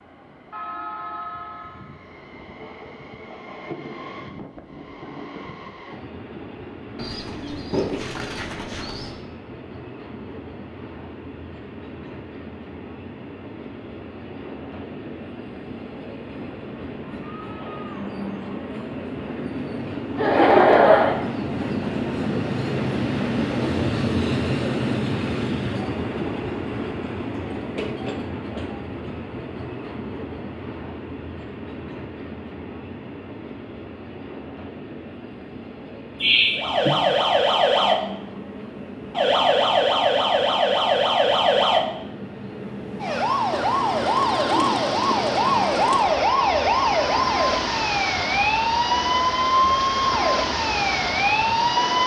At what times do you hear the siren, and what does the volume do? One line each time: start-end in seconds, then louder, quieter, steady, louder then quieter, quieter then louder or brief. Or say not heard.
36.5-52.0 steady.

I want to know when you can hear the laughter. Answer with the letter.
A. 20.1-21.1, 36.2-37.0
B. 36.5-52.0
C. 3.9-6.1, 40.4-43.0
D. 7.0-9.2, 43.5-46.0
A.